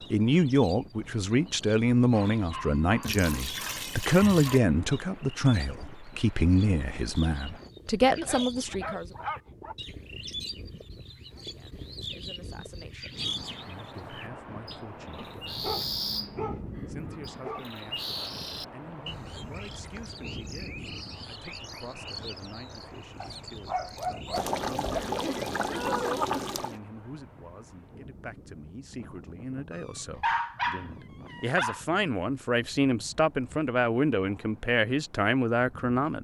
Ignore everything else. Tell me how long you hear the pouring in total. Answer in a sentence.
You can hear the pouring for 4 seconds altogether.